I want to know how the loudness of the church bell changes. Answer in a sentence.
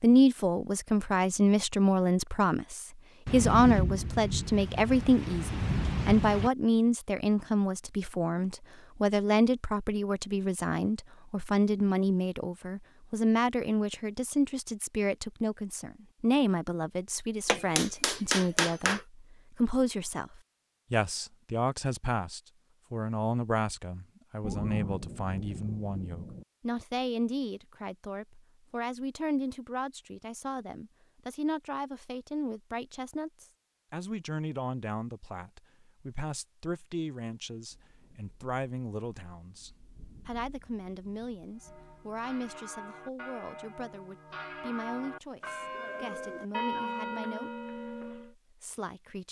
The volume of the church bell goes up.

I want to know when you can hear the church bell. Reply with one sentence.
The church bell can be heard from 41.5 to 48.4 s.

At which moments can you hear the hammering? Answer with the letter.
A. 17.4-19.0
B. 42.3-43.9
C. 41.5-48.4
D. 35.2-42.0
A.